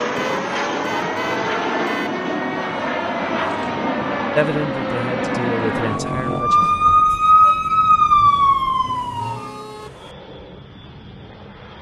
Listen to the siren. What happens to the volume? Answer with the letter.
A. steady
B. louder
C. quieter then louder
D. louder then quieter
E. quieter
B.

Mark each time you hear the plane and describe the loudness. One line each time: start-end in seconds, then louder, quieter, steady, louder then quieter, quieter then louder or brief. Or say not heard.
0.0-11.7 quieter.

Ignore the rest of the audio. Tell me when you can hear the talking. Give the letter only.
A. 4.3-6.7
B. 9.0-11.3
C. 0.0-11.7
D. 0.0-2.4
A.